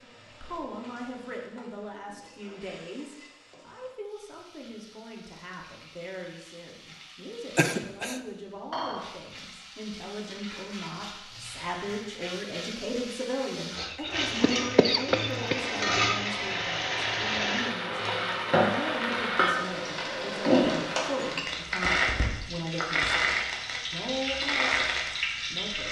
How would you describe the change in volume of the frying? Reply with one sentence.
The volume of the frying goes up.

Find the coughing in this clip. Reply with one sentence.
You can hear the coughing from 7.5 to 8.2 s and from 13.8 to 15.6 s.